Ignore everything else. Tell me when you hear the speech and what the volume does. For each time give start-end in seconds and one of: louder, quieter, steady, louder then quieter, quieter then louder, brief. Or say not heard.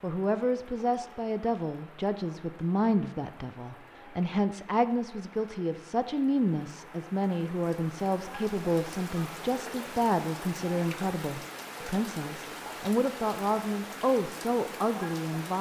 0.0-15.5 steady.